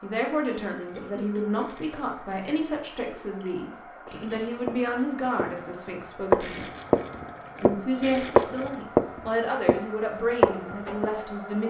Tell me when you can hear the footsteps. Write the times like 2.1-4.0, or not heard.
4.0-5.5, 6.3-7.8, 8.3-9.8, 10.4-11.1.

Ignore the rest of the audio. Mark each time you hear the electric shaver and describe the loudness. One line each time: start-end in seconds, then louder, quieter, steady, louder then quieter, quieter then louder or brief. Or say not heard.
not heard.